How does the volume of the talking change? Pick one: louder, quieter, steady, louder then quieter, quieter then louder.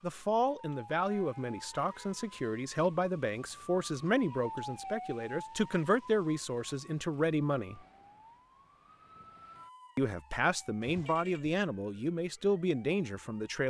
steady.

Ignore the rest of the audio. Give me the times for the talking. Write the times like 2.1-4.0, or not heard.
0.0-7.8, 9.9-13.6.